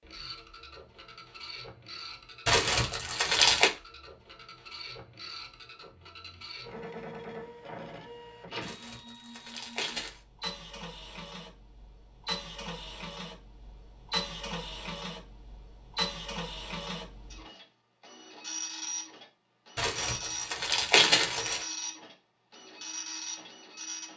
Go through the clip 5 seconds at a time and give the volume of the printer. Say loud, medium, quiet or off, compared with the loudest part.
medium, medium, loud, loud, loud.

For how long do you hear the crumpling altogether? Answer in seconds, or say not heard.
5 s.